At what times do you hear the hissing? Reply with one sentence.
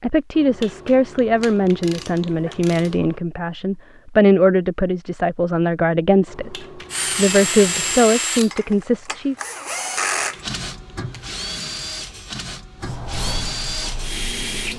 The hissing can be heard from 12.8 to 14.7 s.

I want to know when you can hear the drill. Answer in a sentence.
The drill can be heard from 6.9 to 14.7 s.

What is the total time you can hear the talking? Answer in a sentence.
The talking can be heard for 9 seconds in total.